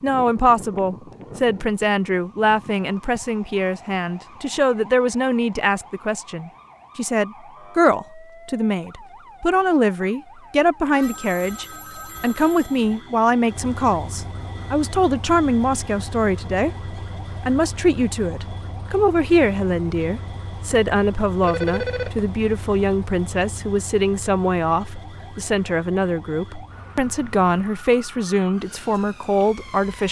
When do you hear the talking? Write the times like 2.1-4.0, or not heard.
0.0-30.0.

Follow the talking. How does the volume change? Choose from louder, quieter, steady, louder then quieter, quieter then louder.
steady.